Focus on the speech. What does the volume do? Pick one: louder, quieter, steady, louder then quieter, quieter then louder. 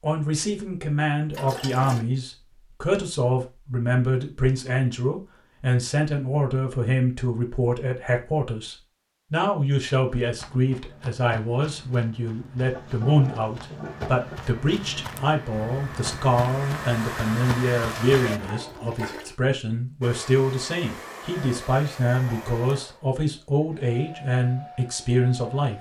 steady.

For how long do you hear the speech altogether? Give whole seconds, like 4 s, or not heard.
26 s.